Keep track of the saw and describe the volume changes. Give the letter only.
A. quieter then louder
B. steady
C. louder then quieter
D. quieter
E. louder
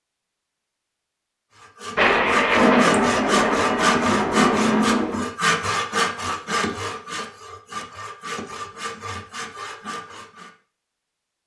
D.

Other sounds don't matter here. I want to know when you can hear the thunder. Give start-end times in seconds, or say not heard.
1.9-5.3.